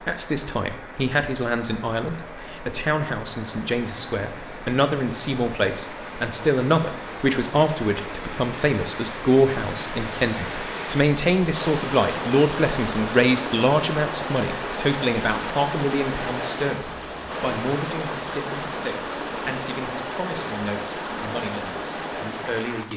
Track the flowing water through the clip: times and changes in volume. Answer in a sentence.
The flowing water can be heard from 0.0 to 22.9 s, getting louder.